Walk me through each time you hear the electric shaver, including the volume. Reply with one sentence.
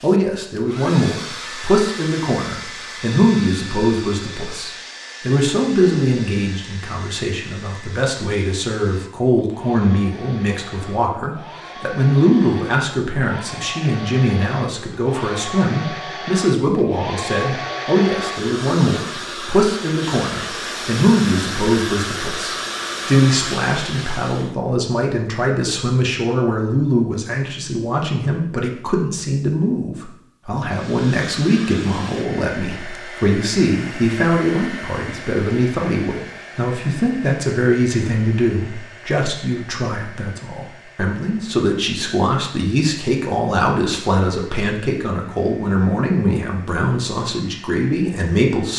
You can't hear the electric shaver here.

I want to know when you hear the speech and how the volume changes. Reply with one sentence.
The speech can be heard from 0.0 to 48.7 s, at a steady volume.